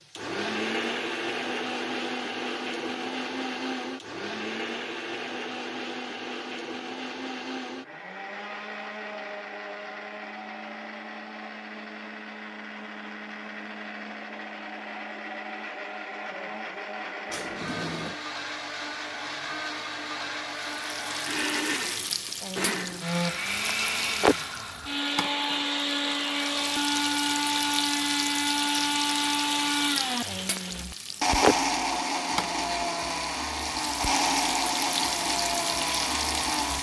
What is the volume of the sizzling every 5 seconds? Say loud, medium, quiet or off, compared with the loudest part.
off, off, off, off, loud, loud, loud, loud.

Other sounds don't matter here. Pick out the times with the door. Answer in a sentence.
You can hear the door from 17.2 to 18.1 s.